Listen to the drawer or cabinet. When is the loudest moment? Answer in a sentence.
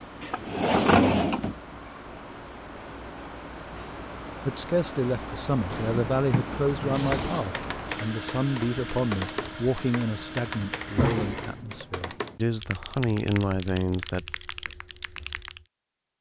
The volume of the drawer or cabinet peaks at 1 second.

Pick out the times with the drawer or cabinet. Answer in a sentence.
You can hear the drawer or cabinet from 0.2 to 1.6 s, from 5.7 to 7.5 s and from 10.8 to 11.8 s.